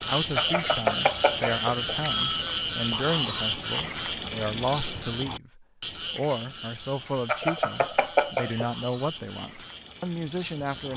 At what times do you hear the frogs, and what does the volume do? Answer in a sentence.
The frogs can be heard from 0.0 to 10.9 s, getting quieter.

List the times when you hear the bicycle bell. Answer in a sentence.
The bicycle bell can be heard from 0.3 to 2.5 s and from 7.2 to 8.8 s.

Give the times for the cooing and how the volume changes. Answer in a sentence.
The cooing can't be heard in this clip.